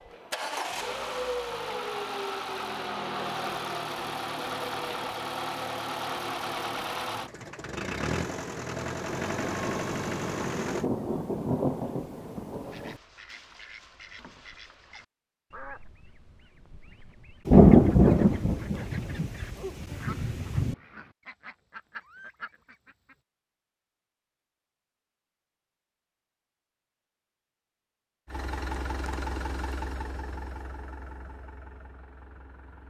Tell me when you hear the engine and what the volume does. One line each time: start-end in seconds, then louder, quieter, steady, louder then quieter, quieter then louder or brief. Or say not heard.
0.0-10.8 steady
28.2-32.8 quieter.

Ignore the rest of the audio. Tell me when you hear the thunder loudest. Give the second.
18 s.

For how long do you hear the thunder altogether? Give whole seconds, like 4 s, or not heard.
7 s.